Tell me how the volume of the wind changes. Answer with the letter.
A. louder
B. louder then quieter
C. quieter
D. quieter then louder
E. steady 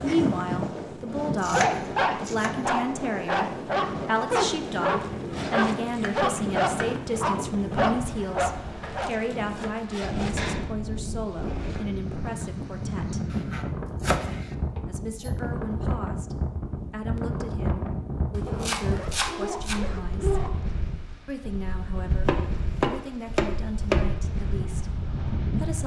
E.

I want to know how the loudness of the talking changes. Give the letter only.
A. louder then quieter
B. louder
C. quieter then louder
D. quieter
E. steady
D.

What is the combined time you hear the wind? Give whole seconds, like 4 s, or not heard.
26 s.